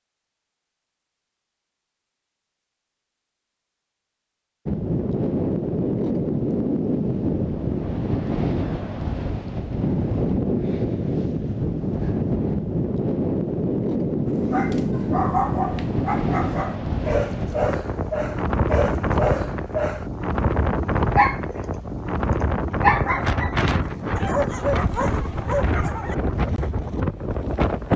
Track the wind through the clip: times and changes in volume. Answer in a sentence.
You can hear the wind from 4.7 to 27.9 s, at a steady volume.